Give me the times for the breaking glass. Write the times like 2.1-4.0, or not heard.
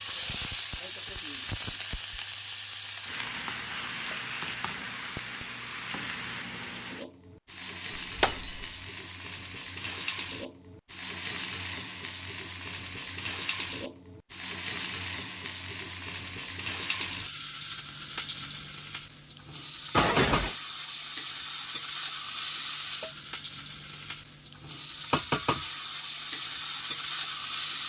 8.2-8.7, 19.9-20.6.